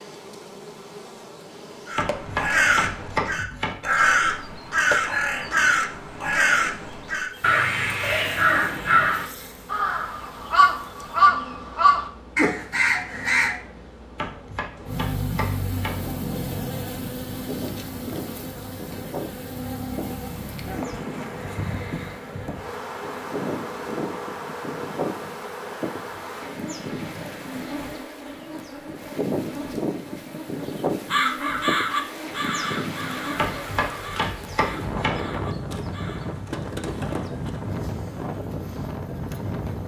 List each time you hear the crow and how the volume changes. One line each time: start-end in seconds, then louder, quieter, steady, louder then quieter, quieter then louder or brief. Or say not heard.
1.9-13.6 steady
31.1-36.4 quieter.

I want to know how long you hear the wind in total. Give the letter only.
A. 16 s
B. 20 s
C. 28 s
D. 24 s
D.